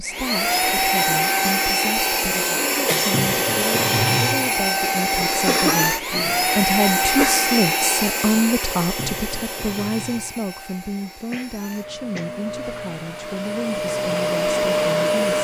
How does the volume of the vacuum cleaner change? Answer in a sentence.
The loudness of the vacuum cleaner goes down, then up.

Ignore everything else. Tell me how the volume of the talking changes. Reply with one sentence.
The volume of the talking goes up, then down.